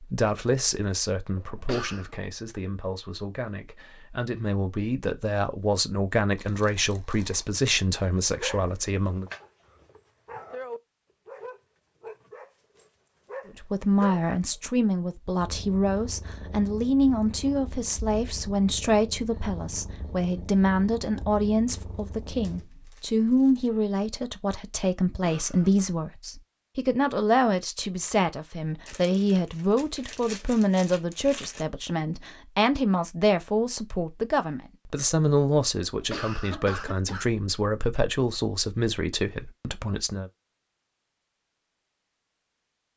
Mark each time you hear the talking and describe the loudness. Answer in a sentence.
You can hear the talking from 0.0 to 9.2 s, getting quieter then louder; and from 13.4 to 40.3 s, at a steady volume.